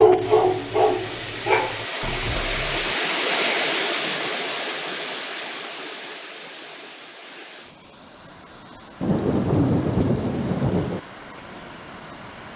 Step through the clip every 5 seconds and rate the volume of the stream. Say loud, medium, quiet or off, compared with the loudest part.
loud, medium, quiet.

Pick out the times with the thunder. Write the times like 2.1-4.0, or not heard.
9.0-11.0.